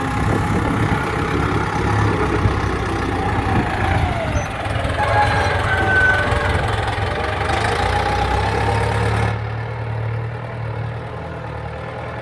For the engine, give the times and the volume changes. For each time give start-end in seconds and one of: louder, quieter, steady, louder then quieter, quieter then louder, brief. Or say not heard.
0.0-12.1 quieter.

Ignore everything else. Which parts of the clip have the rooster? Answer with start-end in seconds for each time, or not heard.
5.0-6.3.